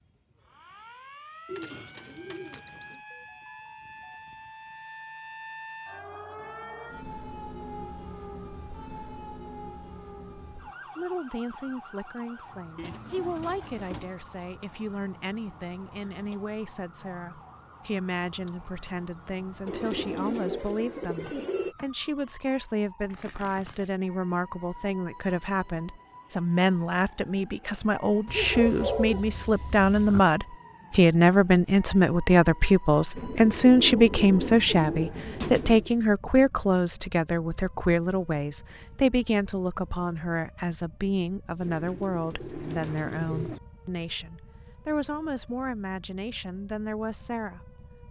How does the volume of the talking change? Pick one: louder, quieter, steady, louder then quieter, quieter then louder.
louder then quieter.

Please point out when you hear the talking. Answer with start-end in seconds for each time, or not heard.
10.9-47.8.